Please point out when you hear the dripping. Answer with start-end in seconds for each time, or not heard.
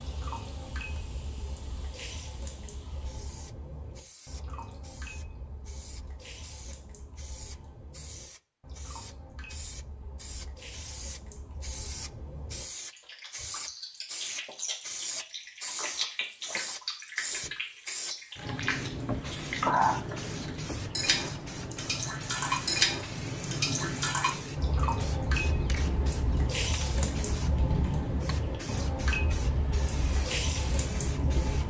0.0-31.6.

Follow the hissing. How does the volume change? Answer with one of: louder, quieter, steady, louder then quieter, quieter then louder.
louder.